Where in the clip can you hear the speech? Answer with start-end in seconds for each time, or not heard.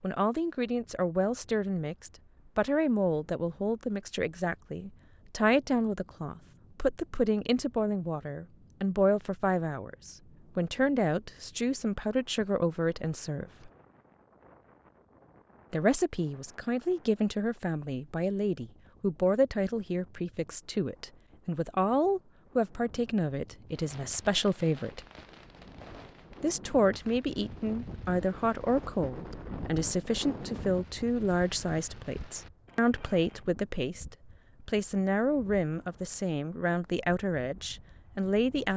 0.0-13.7, 15.7-25.0, 26.4-38.7.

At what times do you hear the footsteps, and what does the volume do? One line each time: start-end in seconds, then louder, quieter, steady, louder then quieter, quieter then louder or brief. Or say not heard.
not heard.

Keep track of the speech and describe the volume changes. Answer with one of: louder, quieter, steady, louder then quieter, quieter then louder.
steady.